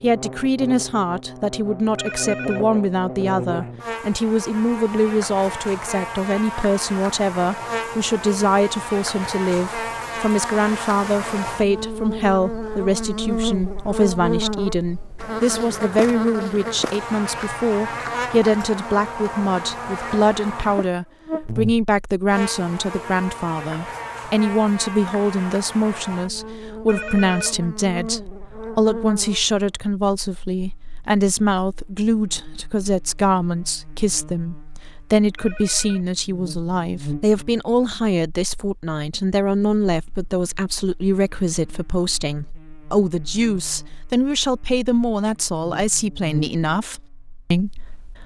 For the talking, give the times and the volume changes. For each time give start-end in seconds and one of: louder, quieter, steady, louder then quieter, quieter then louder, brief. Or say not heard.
0.0-48.2 steady.